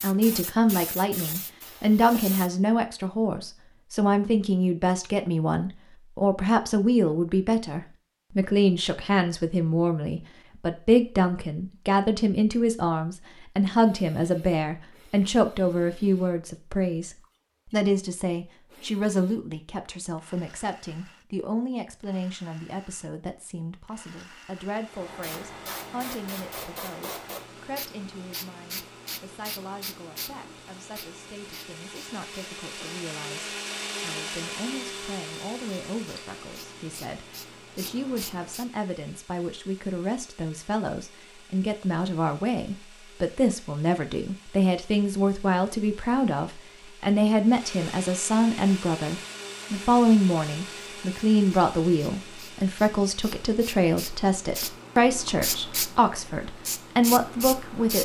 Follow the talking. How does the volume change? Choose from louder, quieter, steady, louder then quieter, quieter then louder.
quieter then louder.